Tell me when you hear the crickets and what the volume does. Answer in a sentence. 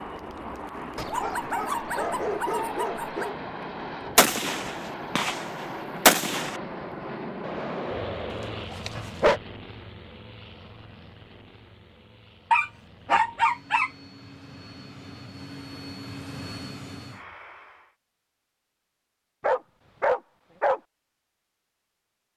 The crickets can't be heard in this clip.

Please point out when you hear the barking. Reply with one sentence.
The barking can be heard from 0.9 to 3.4 s, from 7.4 to 9.4 s, from 12.5 to 13.9 s and from 19.4 to 20.8 s.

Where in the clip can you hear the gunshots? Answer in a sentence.
You can hear the gunshots from 4.2 to 6.5 s.